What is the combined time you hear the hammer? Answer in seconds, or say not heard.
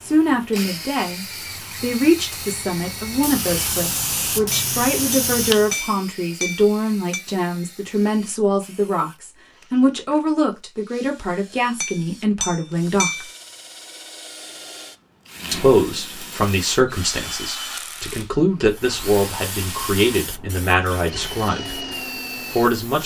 4 s.